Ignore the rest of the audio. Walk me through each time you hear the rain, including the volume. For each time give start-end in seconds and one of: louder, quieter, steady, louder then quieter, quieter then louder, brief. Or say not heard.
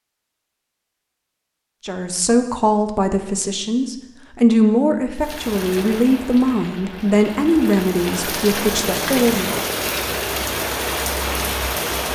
5.2-12.1 louder.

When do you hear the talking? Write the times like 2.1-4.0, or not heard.
1.9-9.6.